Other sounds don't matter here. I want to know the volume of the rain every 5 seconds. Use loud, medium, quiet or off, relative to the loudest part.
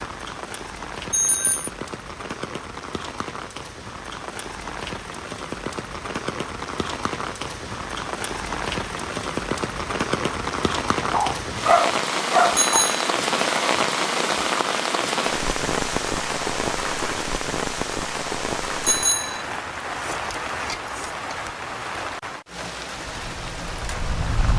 medium, medium, loud, loud, medium.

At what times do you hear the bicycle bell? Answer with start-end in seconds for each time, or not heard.
1.1-1.7, 12.6-13.0, 18.9-19.4.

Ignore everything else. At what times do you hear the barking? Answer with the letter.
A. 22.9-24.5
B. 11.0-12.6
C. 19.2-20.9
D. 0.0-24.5
B.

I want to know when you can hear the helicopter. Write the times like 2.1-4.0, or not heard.
22.9-24.5.